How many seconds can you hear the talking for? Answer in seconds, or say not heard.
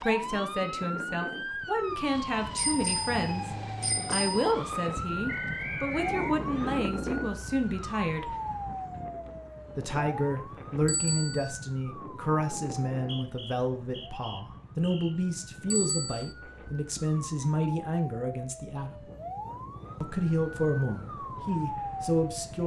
20 s.